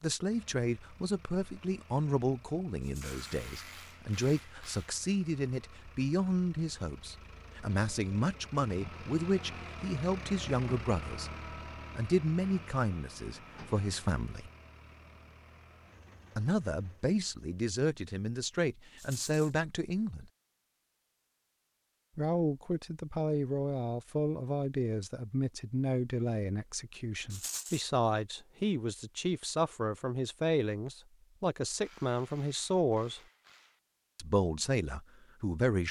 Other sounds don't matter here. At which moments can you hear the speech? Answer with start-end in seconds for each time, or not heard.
0.0-11.3, 11.9-14.5, 16.4-20.3, 22.1-33.2, 34.1-35.8.